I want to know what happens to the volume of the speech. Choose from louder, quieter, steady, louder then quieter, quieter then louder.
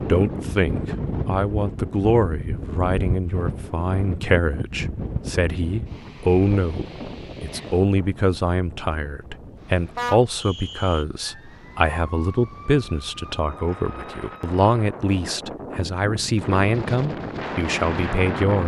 steady.